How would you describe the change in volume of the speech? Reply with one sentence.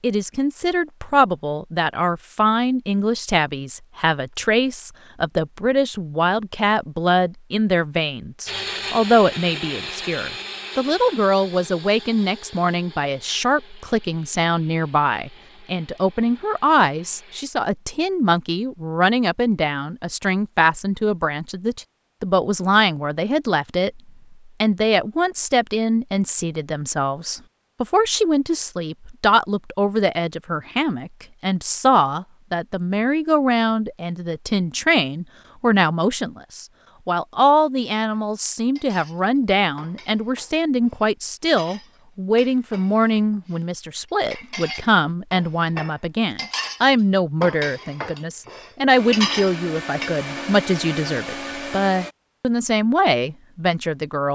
The volume of the speech stays about the same.